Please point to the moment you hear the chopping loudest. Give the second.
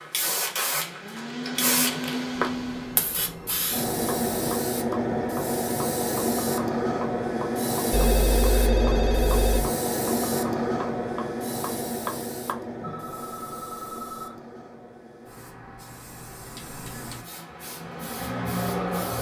12 s.